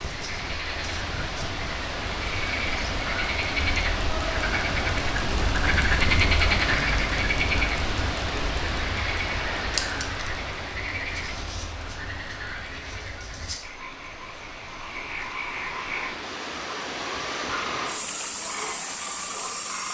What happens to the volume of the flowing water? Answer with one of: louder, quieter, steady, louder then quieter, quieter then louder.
quieter then louder.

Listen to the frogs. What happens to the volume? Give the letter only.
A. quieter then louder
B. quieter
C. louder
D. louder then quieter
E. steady
D.